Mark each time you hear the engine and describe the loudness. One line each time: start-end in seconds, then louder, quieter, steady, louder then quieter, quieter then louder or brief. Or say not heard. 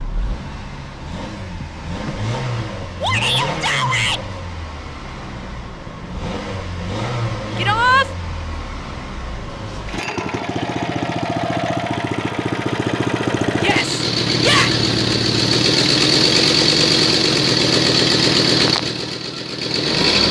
0.0-20.2 louder.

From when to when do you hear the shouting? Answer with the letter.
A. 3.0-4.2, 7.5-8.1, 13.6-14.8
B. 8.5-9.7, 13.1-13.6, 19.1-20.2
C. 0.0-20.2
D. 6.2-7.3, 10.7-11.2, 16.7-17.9
A.